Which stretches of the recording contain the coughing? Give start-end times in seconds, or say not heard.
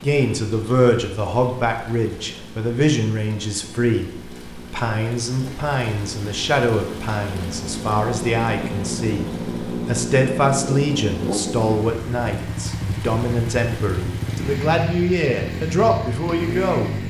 not heard.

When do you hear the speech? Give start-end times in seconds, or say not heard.
0.0-17.0.